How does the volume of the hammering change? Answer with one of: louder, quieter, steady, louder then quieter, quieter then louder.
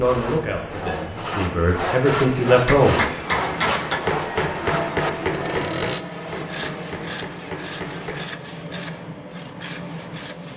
quieter.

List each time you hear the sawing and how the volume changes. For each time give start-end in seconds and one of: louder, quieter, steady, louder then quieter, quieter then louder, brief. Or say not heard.
0.0-10.5 quieter.